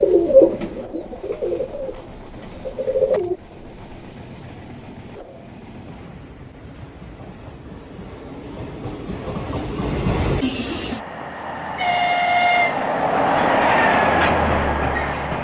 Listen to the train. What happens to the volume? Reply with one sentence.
The loudness of the train goes up.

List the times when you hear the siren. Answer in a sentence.
You can't hear the siren here.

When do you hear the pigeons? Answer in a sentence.
The pigeons can be heard from 0.0 to 3.4 s.